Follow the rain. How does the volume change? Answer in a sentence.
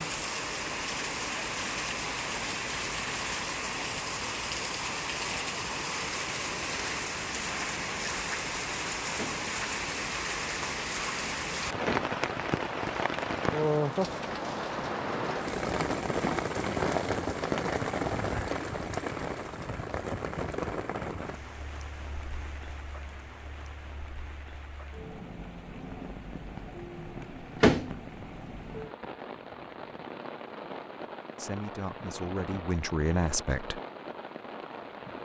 The loudness of the rain goes down.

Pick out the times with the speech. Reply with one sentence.
The speech can be heard from 31.4 to 33.8 s.